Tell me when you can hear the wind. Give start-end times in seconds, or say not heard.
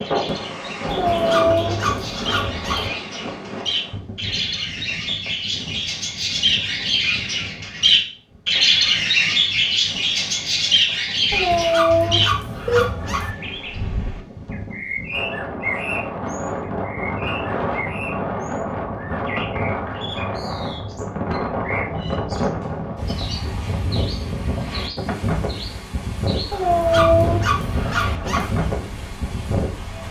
0.0-30.0.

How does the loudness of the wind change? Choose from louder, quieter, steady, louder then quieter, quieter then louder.
quieter then louder.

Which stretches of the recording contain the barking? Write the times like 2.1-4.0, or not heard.
0.8-2.9, 11.3-13.3, 26.5-28.6.